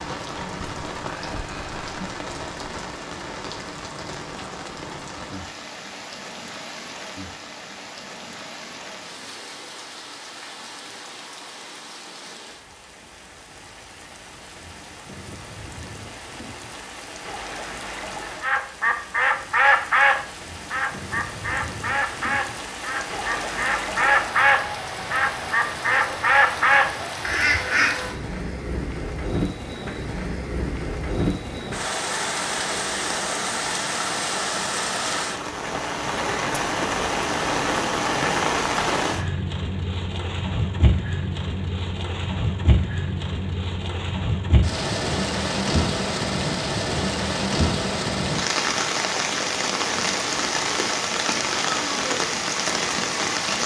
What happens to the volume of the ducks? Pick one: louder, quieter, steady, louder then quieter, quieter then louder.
quieter then louder.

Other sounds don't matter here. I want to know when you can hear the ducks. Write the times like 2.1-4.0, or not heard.
18.4-27.9.